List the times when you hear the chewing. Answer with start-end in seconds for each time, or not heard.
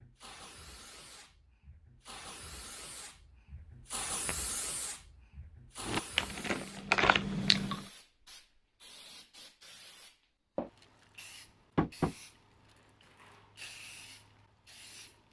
5.8-7.8.